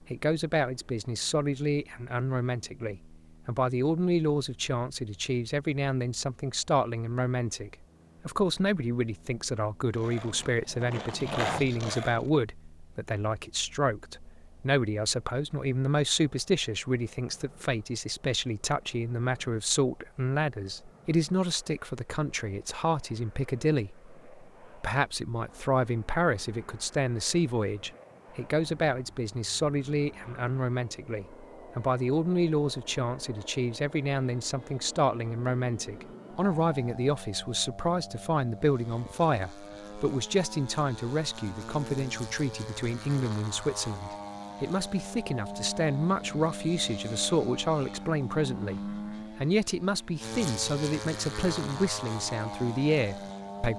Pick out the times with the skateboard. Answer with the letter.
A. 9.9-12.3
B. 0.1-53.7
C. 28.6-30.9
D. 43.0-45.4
A.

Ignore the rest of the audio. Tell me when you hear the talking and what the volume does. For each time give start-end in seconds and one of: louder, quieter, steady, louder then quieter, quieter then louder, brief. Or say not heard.
0.1-53.7 steady.